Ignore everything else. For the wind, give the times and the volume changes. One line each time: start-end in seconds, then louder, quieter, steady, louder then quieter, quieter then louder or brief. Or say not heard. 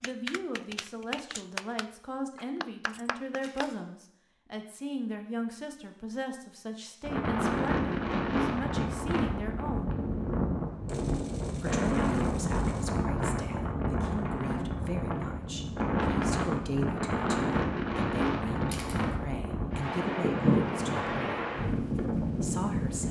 7.0-23.0 steady.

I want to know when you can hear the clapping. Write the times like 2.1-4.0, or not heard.
0.0-3.7.